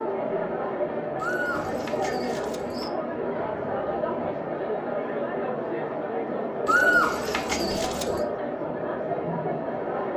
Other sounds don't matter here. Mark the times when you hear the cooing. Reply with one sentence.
The cooing can be heard from 1.1 to 2.9 s and from 6.7 to 8.2 s.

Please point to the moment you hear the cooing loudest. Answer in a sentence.
The loudest moment of the cooing is at 7 seconds.